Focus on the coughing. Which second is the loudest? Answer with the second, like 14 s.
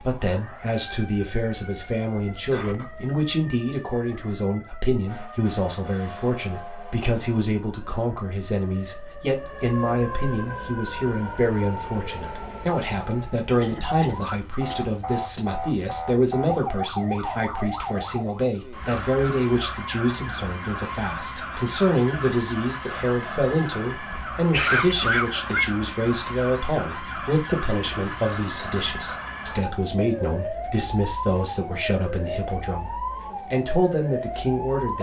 25 s.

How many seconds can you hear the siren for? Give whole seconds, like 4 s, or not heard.
35 s.